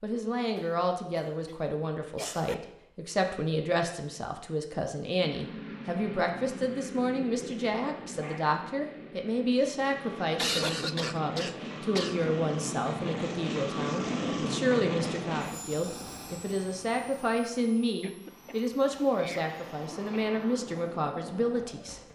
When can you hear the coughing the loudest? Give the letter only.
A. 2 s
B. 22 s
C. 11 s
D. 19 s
C.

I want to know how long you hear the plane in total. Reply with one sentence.
The plane can be heard for 17 seconds in total.